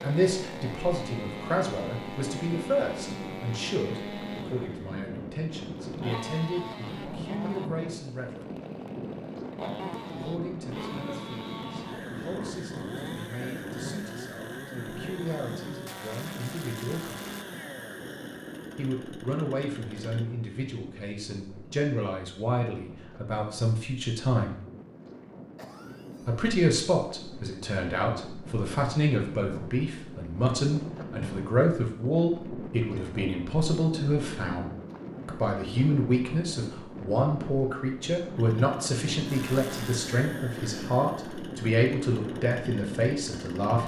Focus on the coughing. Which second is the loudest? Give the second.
11 s.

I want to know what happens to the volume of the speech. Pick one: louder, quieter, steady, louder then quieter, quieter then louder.
quieter then louder.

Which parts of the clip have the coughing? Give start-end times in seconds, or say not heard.
10.9-11.3, 25.6-26.3.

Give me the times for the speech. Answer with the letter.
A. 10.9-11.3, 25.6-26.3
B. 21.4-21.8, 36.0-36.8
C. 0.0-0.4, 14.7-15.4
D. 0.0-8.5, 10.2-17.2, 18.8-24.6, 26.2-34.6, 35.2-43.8
D.